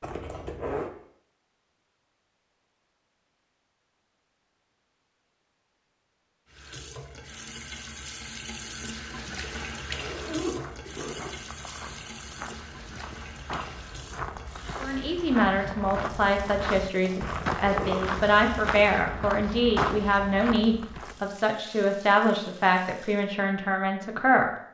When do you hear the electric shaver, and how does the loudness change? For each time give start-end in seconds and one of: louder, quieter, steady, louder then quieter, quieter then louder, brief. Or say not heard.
not heard.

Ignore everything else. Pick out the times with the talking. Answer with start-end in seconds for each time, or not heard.
14.8-24.5.